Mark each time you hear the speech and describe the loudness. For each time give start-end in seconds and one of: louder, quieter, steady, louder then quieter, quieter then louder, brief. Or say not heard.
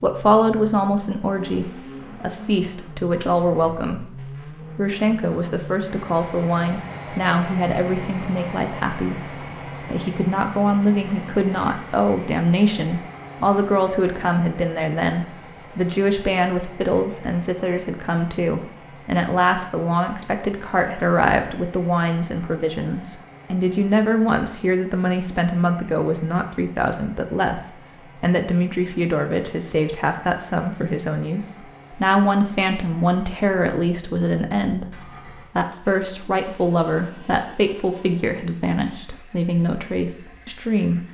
0.0-41.0 steady.